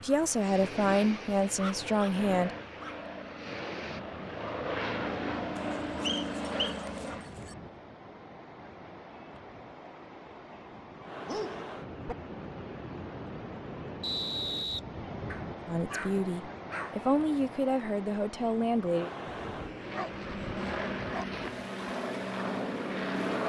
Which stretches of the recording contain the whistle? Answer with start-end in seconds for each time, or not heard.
6.0-6.8, 14.0-14.8.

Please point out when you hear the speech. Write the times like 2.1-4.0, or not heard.
0.0-2.5, 15.7-19.1.